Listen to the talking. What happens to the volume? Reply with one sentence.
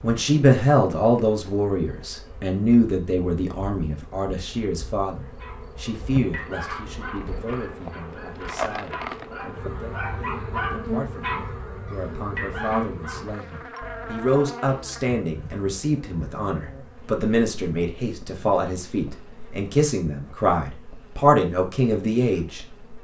The loudness of the talking goes down, then up.